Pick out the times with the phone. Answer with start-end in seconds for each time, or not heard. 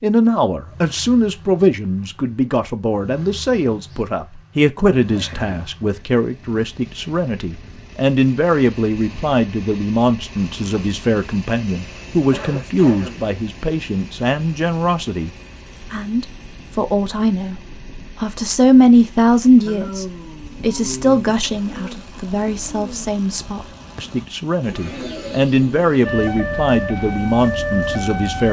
not heard.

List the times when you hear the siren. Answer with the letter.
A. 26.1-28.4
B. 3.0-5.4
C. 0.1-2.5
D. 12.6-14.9
A.